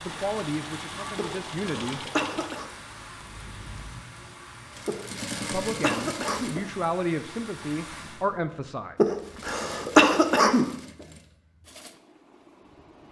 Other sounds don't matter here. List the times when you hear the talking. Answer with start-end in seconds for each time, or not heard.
0.0-2.0, 5.4-8.9.